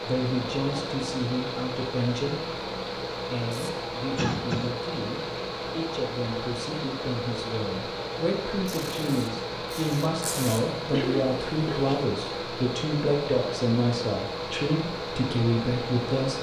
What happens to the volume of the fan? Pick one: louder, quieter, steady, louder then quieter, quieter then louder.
steady.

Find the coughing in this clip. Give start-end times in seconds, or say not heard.
4.2-4.8, 10.9-11.9.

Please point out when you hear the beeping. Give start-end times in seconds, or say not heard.
not heard.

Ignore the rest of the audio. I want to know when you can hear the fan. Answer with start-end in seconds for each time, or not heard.
0.0-16.3.